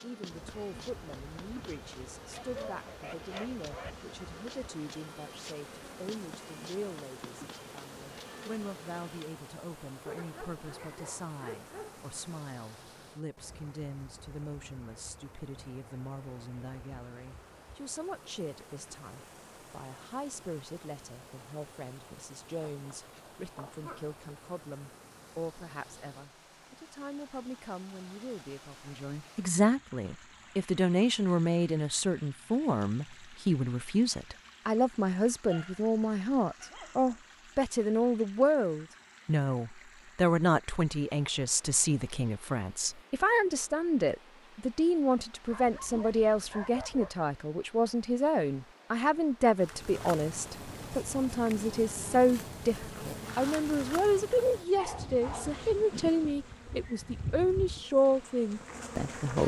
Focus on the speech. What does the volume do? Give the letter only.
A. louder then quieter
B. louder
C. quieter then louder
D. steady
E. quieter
B.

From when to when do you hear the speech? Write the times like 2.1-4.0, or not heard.
0.0-59.4.